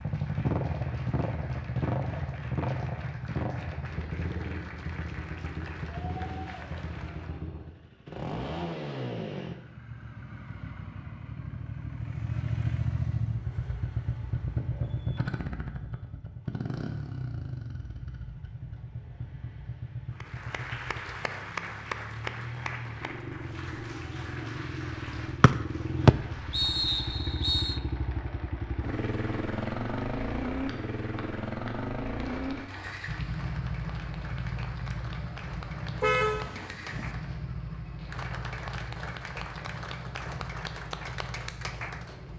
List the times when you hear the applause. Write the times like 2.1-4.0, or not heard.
0.0-7.4, 20.1-42.3.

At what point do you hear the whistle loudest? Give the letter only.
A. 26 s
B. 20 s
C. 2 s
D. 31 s
A.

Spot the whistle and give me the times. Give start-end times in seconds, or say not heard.
25.4-27.8.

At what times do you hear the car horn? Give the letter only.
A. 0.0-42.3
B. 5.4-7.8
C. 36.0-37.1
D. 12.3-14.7
C.